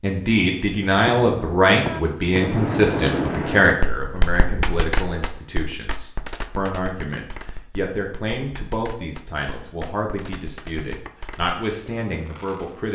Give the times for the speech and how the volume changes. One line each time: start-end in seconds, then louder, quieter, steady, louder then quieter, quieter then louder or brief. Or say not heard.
0.0-12.9 quieter.